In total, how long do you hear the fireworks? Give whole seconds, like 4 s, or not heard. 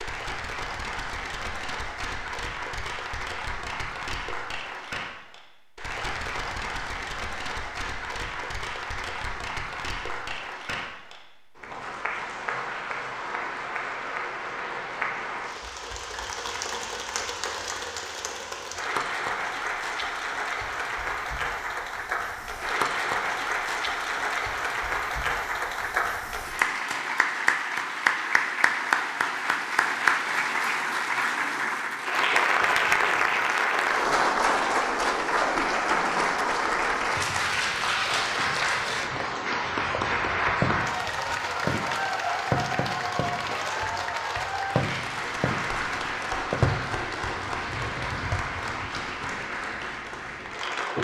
10 s.